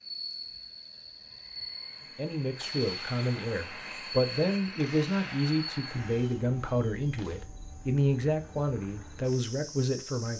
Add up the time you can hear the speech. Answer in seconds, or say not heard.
8 s.